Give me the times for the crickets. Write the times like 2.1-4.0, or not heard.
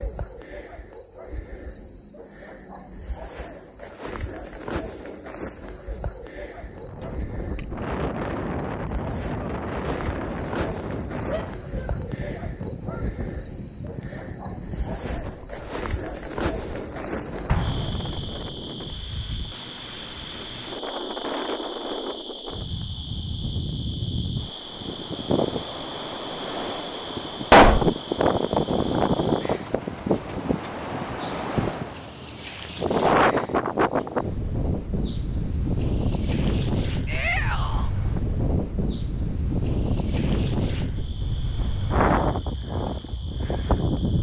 0.0-44.1.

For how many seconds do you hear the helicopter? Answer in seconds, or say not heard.
not heard.